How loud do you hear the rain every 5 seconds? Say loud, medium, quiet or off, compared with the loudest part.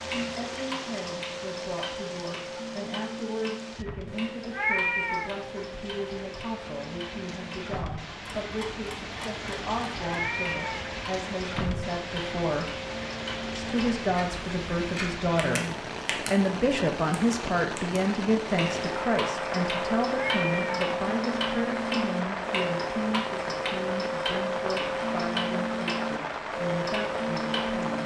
medium, medium, loud, loud, loud, loud.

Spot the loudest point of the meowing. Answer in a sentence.
The loudest moment of the meowing is at 5 seconds.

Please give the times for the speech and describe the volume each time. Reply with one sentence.
You can hear the speech from 0.1 to 12.8 s, at a steady volume; and from 13.6 to 28.0 s, getting quieter.